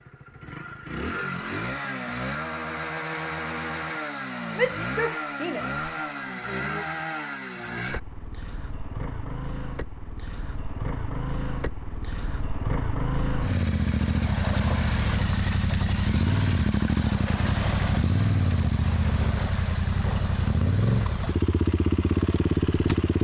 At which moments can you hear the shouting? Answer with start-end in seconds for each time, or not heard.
4.5-6.8.